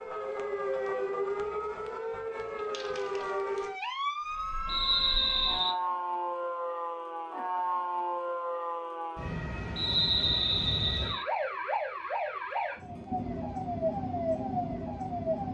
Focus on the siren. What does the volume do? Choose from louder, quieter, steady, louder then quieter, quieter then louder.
steady.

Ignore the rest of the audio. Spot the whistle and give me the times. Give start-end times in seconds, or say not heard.
4.7-5.8, 9.8-11.2.